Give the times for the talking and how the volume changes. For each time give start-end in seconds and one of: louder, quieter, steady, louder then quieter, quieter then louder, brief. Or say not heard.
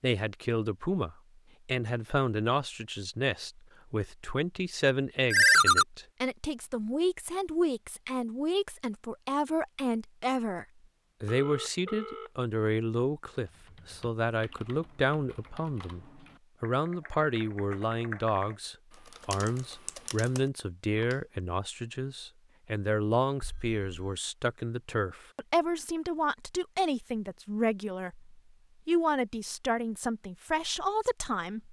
0.0-31.6 steady.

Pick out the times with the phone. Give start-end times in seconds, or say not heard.
5.3-5.8, 11.2-12.3, 23.4-24.1.